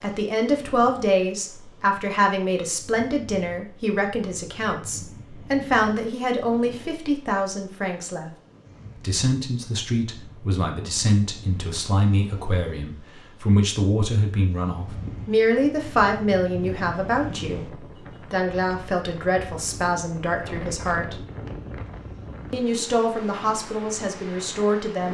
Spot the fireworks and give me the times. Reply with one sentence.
The fireworks can't be heard in this clip.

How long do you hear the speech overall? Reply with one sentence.
The speech can be heard for 23 seconds in total.